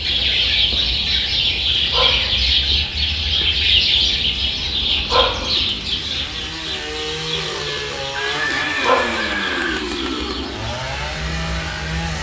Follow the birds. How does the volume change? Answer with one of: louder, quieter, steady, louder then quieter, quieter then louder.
quieter.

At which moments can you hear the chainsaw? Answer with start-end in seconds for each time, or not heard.
0.0-12.1.